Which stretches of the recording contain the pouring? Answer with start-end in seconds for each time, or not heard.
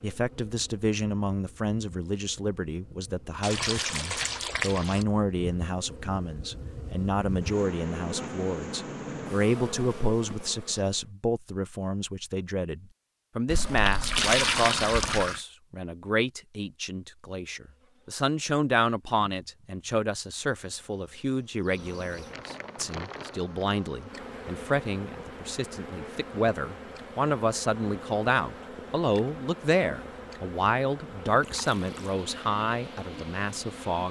3.4-5.0, 13.4-15.4, 31.4-32.1.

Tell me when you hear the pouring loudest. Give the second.
14 s.